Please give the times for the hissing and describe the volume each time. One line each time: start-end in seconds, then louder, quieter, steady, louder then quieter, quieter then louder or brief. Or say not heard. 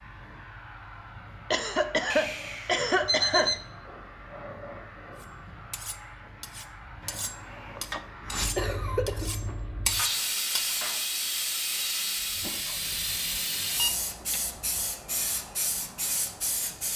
0.0-16.9 louder.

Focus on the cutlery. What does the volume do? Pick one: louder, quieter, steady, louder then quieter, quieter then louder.
louder.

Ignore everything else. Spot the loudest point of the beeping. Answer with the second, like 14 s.
3 s.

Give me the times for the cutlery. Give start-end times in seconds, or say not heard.
5.2-10.8.